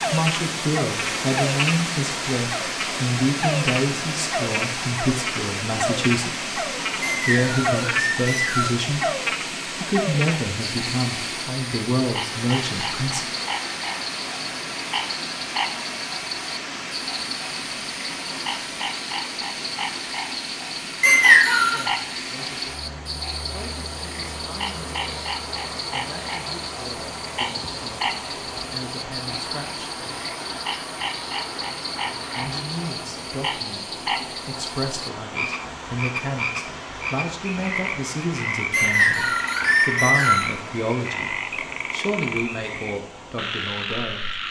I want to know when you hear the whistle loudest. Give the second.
21 s.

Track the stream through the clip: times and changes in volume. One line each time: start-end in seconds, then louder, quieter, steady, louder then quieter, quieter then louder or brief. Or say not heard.
0.0-44.4 quieter.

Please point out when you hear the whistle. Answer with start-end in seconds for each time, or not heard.
7.0-8.8, 21.0-21.9, 38.7-40.5.